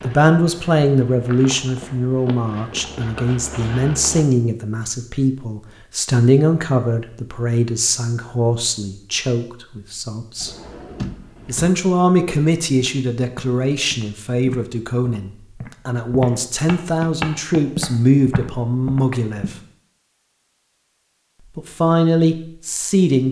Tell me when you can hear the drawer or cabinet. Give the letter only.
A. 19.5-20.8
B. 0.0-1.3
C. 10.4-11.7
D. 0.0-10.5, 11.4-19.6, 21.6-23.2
C.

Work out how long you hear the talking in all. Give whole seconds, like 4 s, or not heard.
20 s.